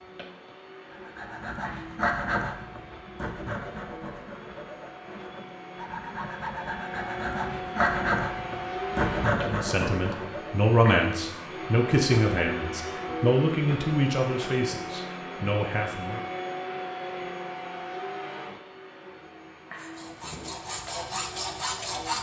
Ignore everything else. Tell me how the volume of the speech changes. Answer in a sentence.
The loudness of the speech goes down.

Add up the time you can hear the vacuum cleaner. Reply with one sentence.
The vacuum cleaner can be heard for 22 seconds in total.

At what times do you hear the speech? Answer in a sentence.
The speech can be heard from 9.3 to 16.2 s.